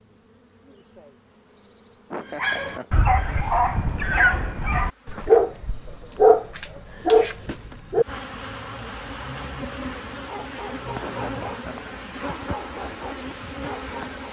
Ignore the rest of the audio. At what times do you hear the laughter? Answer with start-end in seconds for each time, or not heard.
2.1-3.0, 11.0-11.9.